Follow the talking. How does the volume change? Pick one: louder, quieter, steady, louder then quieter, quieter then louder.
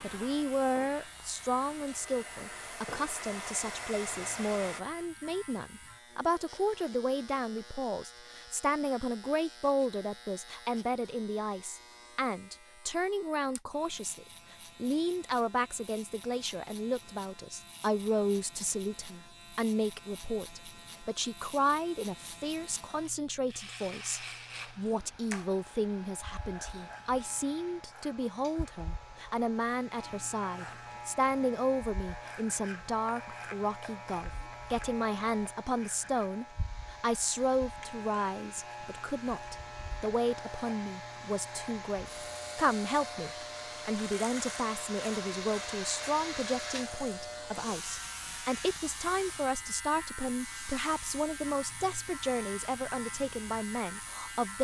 steady.